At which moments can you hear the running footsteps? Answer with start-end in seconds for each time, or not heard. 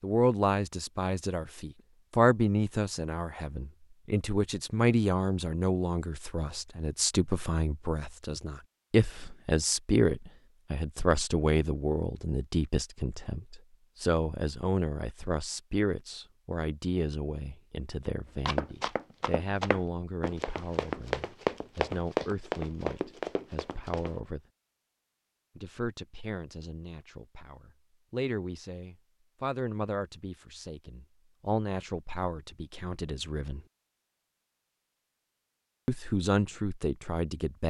18.4-24.1.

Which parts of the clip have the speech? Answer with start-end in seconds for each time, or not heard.
0.0-24.4, 25.6-33.6, 35.9-37.6.